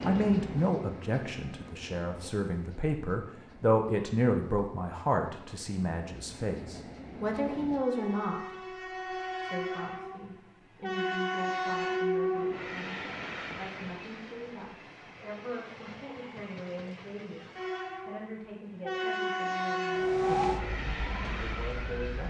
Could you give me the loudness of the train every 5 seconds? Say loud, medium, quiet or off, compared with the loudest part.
medium, medium, loud, loud, loud.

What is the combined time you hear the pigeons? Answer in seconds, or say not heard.
not heard.